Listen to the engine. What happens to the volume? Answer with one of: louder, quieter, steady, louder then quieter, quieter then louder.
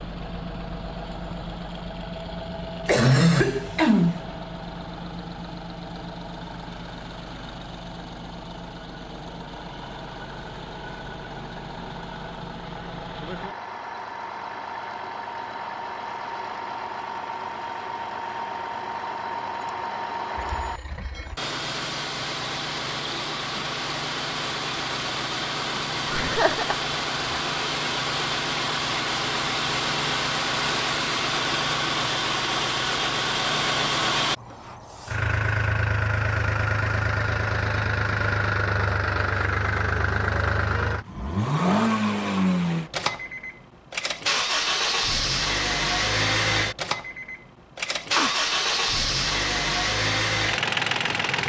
louder.